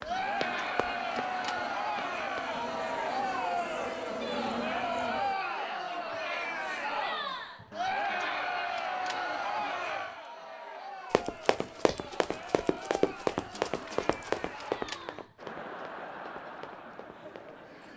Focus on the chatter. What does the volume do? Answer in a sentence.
The loudness of the chatter goes down.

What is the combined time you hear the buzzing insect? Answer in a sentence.
The buzzing insect can be heard for 5 seconds in total.